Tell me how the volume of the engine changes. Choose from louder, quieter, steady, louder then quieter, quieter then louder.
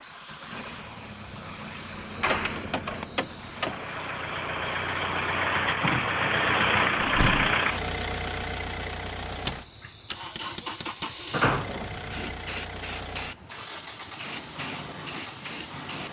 louder then quieter.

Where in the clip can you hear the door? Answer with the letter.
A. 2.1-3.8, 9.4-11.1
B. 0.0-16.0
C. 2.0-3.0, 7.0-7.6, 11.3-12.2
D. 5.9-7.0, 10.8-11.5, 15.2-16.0
C.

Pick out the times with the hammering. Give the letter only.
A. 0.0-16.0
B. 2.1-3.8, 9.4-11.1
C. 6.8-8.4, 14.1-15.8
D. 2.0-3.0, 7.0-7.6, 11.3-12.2
B.